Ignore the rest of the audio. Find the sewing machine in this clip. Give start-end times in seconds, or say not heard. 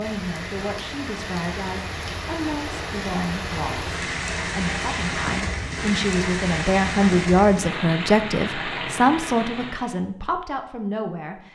not heard.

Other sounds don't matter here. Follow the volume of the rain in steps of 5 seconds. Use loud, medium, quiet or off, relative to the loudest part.
loud, loud, off.